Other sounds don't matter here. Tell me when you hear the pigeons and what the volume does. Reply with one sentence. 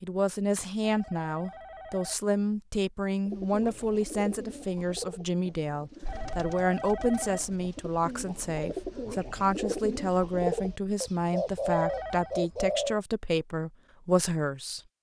The pigeons can be heard from 3.2 to 13.0 s, getting quieter then louder.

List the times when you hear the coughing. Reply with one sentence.
The coughing can't be heard in this clip.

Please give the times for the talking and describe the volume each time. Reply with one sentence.
You can hear the talking from 0.0 to 14.8 s, at a steady volume.